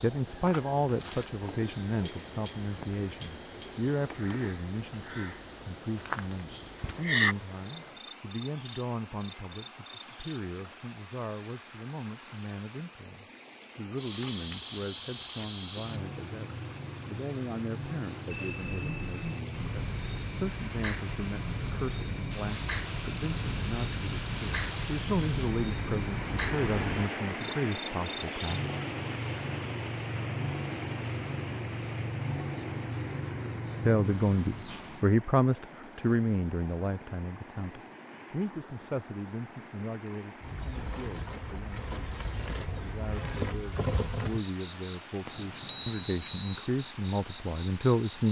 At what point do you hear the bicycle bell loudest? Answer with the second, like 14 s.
46 s.